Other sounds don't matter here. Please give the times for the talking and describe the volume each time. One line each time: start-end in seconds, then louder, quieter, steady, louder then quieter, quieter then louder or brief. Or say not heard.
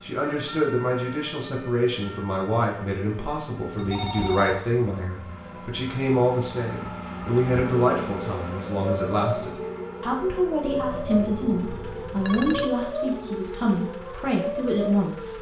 0.0-15.3 steady.